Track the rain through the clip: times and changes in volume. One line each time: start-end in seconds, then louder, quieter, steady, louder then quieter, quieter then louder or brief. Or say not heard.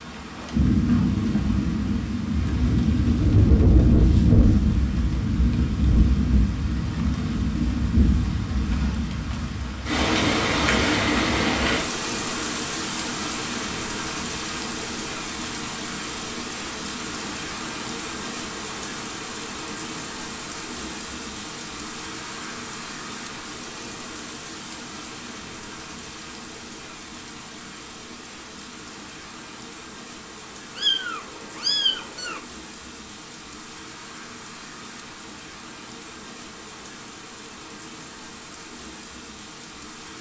0.0-40.1 quieter.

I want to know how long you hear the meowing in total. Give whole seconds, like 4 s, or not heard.
2 s.